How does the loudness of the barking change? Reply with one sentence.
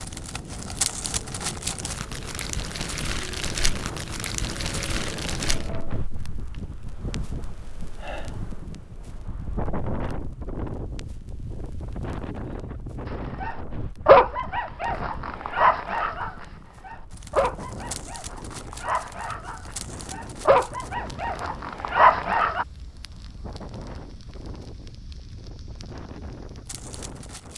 The loudness of the barking goes down, then up.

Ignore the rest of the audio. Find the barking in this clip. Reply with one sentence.
You can hear the barking from 13.4 to 22.6 s.